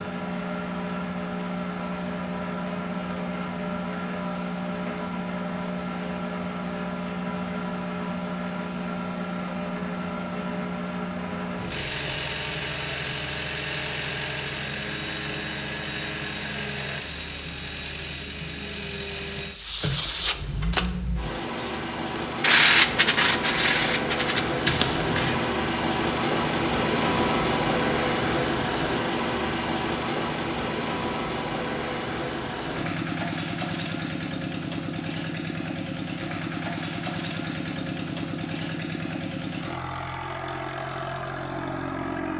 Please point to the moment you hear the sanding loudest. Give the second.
23 s.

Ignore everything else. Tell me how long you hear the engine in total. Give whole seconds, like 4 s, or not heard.
42 s.